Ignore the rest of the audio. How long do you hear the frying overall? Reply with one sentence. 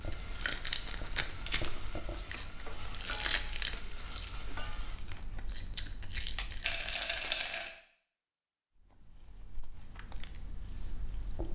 You can hear the frying for 5 seconds altogether.